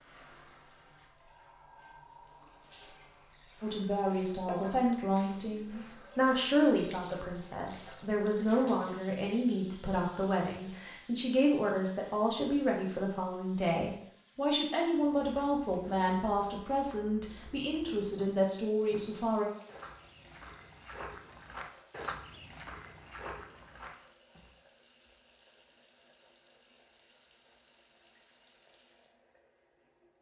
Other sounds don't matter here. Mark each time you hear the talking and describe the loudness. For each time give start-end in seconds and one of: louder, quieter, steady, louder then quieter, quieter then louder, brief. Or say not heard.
3.6-19.4 steady.